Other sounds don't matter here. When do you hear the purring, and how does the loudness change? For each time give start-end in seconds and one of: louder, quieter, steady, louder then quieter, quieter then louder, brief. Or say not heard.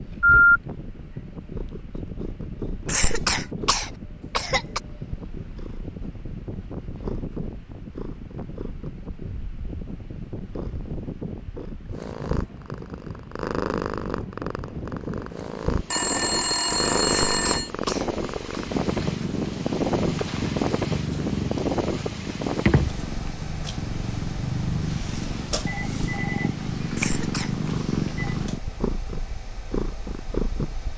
0.0-30.9 louder.